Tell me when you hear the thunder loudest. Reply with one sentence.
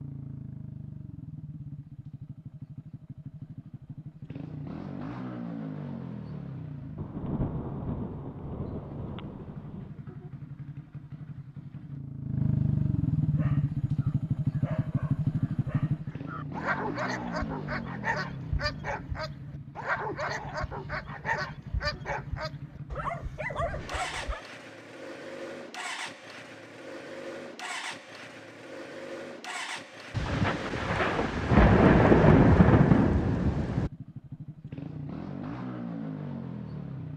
The loudest moment of the thunder is at 32 seconds.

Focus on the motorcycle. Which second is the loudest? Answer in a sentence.
The volume of the motorcycle peaks at 13 seconds.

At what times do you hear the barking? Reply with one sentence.
You can hear the barking from 13.3 to 24.4 s.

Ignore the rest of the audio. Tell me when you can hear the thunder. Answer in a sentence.
The thunder can be heard from 7.0 to 9.9 s and from 30.1 to 33.9 s.